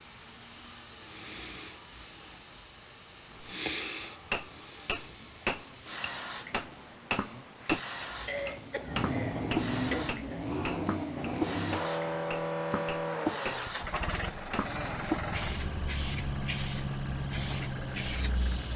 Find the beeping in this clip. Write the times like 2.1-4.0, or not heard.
not heard.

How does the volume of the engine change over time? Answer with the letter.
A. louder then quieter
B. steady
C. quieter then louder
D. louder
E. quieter
D.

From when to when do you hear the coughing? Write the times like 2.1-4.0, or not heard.
8.2-10.1.